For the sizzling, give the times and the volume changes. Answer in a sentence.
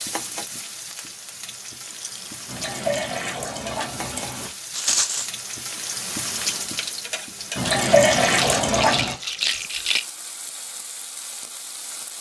You can hear the sizzling from 0.0 to 12.1 s, getting louder then quieter.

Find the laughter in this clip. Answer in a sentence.
The laughter can't be heard in this clip.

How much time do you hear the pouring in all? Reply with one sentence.
You can hear the pouring for 4 seconds altogether.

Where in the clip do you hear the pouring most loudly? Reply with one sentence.
The volume of the pouring peaks at 8 seconds.